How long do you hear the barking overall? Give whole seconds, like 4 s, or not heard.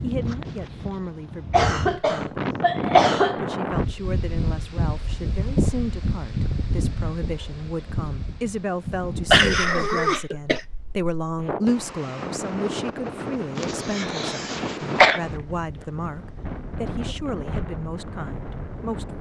not heard.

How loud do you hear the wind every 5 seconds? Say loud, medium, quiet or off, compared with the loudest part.
loud, loud, loud, medium.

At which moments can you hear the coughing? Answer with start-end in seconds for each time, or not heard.
1.5-3.4, 9.3-10.6, 13.6-15.2.